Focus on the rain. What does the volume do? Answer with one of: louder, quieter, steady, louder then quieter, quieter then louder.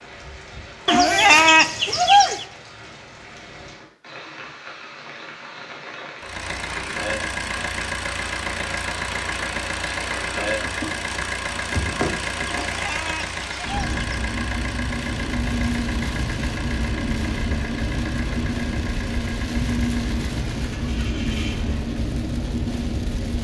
louder.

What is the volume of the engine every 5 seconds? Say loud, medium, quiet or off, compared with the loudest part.
off, loud, loud, medium, medium.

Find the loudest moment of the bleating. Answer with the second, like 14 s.
1 s.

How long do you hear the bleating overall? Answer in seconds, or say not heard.
3 s.